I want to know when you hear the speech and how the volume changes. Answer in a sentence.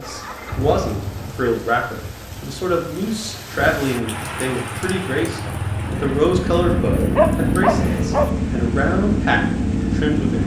The speech can be heard from 0.0 to 10.4 s, at a steady volume.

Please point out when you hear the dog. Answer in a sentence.
The dog can be heard from 6.3 to 8.3 s.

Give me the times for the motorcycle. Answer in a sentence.
You can hear the motorcycle from 0.0 to 10.4 s.